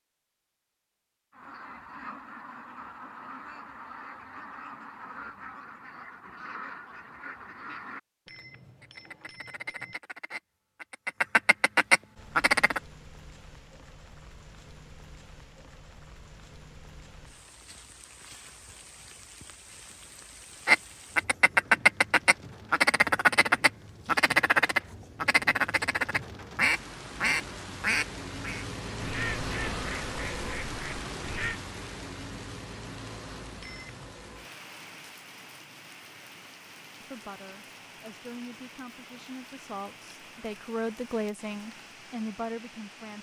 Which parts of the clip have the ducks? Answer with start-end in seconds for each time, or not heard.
1.3-12.8, 20.6-31.6.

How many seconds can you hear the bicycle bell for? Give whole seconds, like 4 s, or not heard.
2 s.